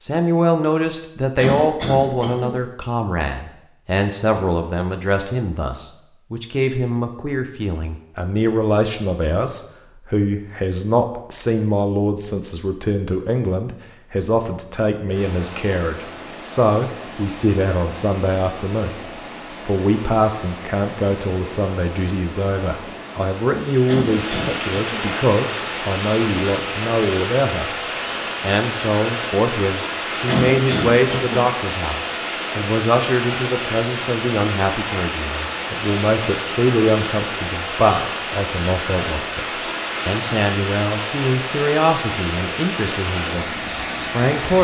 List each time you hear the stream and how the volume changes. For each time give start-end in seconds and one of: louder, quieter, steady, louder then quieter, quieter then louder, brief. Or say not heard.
15.1-44.5 louder.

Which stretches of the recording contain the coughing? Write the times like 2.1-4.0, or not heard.
1.4-2.5, 23.9-25.1, 30.2-31.4.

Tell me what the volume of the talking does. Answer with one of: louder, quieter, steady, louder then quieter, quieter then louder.
steady.